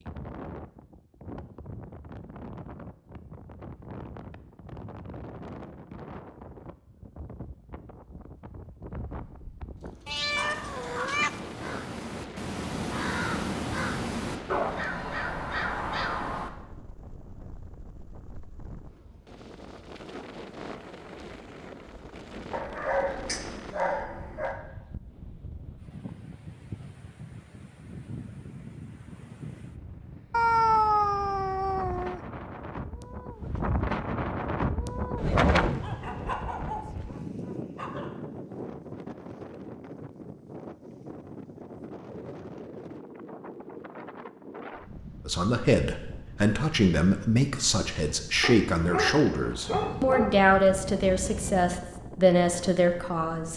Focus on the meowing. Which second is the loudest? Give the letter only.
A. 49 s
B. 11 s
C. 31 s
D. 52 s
C.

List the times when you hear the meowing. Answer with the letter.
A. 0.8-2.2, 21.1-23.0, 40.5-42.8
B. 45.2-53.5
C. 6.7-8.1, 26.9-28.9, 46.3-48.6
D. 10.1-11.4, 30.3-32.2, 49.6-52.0
D.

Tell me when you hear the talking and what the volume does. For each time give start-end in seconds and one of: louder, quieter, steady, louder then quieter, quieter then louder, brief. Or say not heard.
45.2-53.5 steady.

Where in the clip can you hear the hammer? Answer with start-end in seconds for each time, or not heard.
not heard.